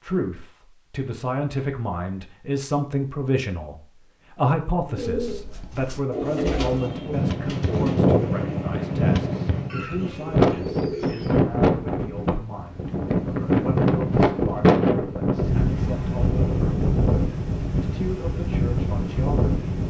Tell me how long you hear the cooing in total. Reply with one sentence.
You can hear the cooing for 7 seconds altogether.